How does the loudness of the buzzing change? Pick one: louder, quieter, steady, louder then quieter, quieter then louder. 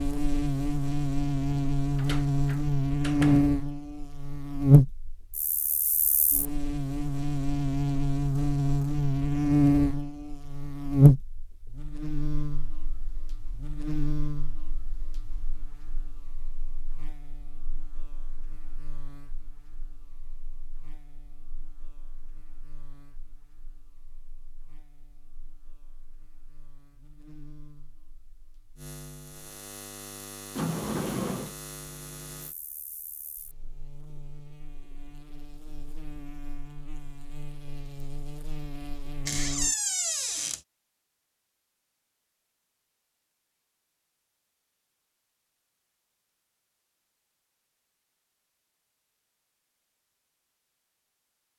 quieter then louder.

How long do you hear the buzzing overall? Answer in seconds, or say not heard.
40 s.